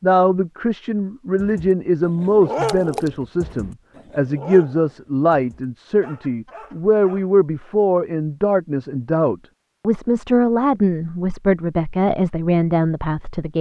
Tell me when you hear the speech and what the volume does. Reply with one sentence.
You can hear the speech from 0.0 to 13.5 s, at a steady volume.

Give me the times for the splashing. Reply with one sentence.
You can hear the splashing from 2.6 to 3.1 s.